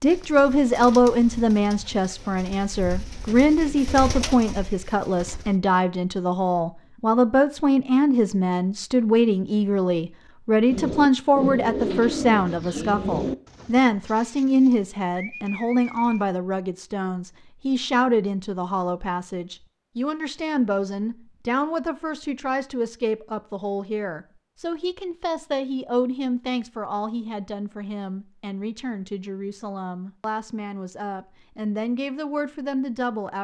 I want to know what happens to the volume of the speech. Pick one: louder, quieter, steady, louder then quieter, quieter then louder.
quieter.